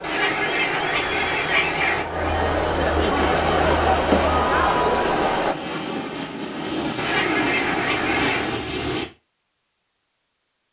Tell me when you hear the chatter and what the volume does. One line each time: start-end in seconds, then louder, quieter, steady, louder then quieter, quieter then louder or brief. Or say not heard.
0.0-5.5 louder.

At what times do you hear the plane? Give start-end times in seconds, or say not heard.
3.1-9.1.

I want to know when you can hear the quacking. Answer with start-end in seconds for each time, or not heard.
0.0-2.0, 7.0-8.5.